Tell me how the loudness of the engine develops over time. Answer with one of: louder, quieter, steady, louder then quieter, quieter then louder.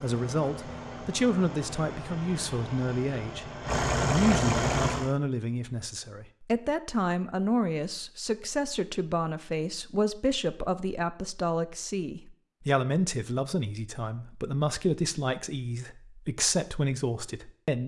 louder.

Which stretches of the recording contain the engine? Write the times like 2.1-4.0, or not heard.
0.0-5.2.